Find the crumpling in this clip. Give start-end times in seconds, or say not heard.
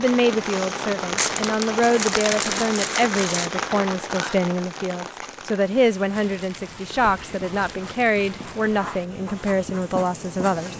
1.1-3.5, 6.1-8.7.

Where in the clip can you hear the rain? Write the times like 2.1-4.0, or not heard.
0.0-10.7.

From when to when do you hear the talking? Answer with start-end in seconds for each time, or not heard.
0.0-10.7.